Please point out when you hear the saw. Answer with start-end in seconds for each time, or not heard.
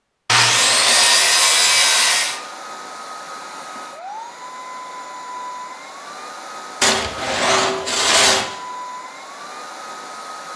0.2-2.4, 6.8-8.5.